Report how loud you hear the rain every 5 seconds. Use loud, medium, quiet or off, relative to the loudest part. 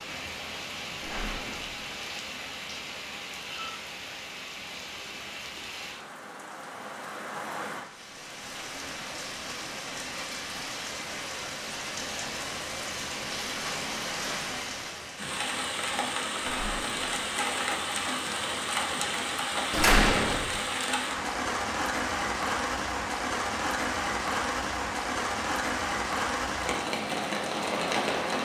medium, medium, medium, loud, loud, loud.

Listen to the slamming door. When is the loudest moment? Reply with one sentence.
The volume of the slamming door peaks at 20 seconds.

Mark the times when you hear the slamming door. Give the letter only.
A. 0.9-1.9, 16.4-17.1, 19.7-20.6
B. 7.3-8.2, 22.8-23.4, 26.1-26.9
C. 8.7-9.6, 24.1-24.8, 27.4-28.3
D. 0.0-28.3
A.